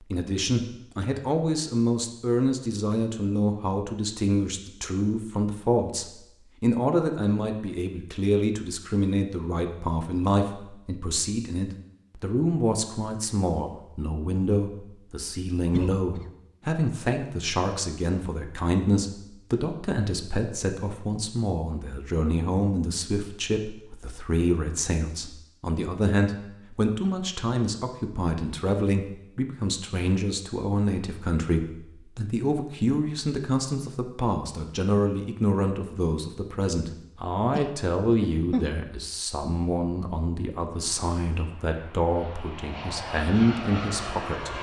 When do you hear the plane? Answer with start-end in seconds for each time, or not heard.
40.6-44.5.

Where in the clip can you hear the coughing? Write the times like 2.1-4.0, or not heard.
15.7-16.3, 37.5-38.7.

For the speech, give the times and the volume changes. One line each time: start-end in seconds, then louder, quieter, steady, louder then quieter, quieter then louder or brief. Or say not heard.
0.0-44.5 steady.